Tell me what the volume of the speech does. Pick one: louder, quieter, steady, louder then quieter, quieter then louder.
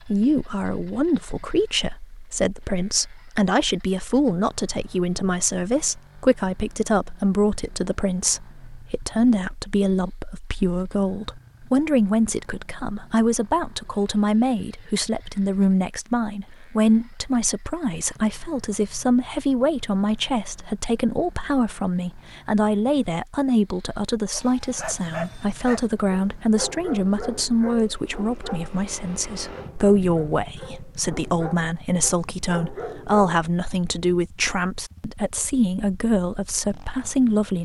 steady.